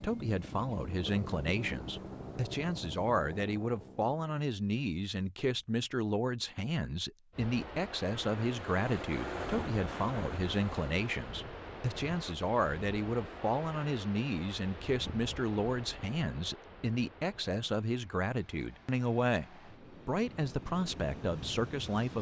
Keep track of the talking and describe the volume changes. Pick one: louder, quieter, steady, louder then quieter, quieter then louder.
steady.